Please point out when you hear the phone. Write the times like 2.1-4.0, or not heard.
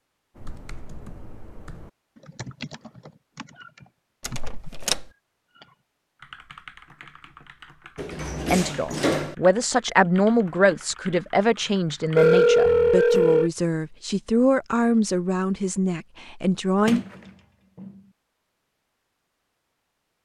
12.2-13.5.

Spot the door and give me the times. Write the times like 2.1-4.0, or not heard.
4.2-5.0, 8.0-9.3, 16.9-18.1.